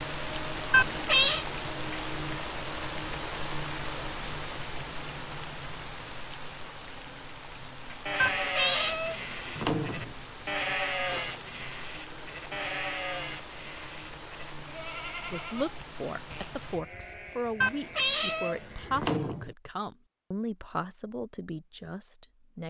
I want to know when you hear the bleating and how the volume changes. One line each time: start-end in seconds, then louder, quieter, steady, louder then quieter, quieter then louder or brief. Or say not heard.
7.9-19.1 quieter.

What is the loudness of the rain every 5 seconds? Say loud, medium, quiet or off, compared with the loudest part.
loud, medium, medium, medium, off.